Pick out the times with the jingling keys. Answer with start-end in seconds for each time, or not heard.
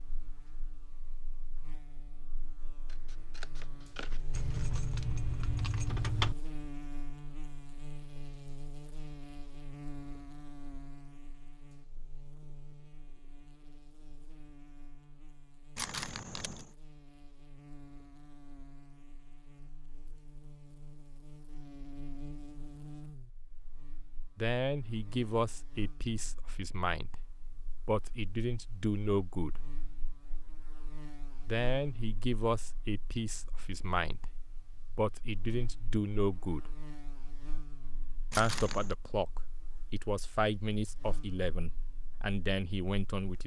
4.3-6.3, 15.8-16.6, 38.3-39.0.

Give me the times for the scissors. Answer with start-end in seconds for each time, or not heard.
2.9-4.5.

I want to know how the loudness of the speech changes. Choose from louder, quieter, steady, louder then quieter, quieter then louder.
steady.